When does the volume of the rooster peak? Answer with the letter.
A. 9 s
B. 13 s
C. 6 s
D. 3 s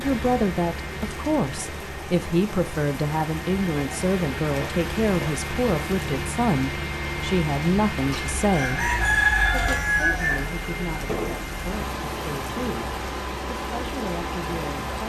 A.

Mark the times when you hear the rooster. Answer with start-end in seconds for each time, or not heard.
8.1-10.4.